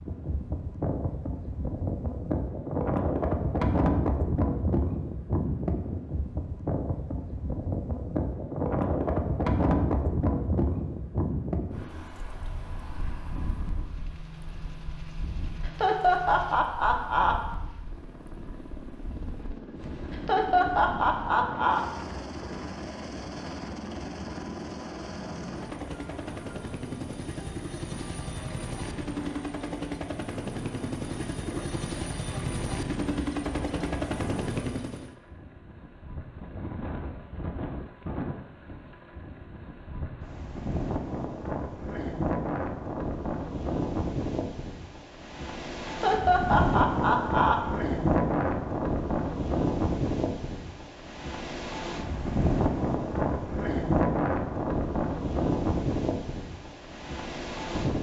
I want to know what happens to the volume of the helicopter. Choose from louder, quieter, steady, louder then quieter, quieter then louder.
louder.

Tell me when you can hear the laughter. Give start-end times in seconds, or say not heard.
15.7-17.4, 20.1-21.9, 45.9-47.6.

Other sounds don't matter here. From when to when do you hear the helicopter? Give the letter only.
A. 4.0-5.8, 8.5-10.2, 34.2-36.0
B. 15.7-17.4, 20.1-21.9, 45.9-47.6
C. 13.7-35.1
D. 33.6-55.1
C.